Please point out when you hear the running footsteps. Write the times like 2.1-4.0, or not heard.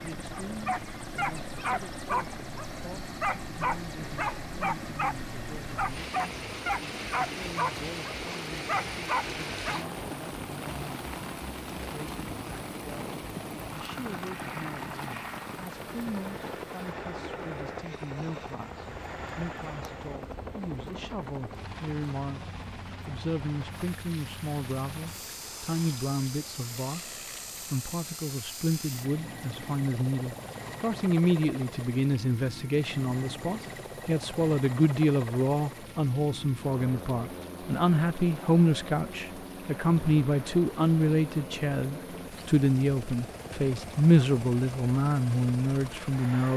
not heard.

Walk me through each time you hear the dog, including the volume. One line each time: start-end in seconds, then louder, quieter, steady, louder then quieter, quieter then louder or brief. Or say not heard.
0.3-9.8 steady.